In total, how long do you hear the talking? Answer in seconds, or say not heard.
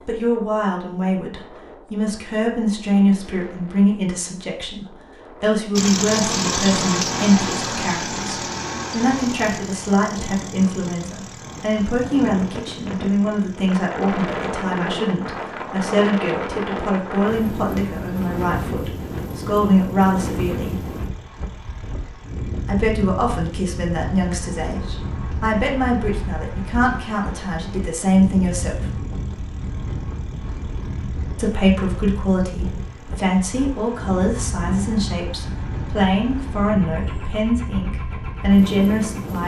35 s.